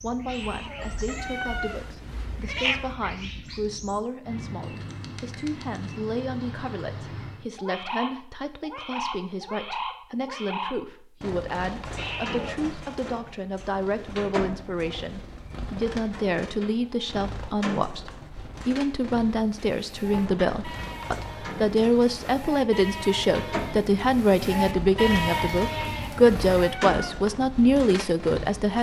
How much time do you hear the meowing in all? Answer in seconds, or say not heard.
5 s.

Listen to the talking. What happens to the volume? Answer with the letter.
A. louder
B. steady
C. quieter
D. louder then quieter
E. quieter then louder
A.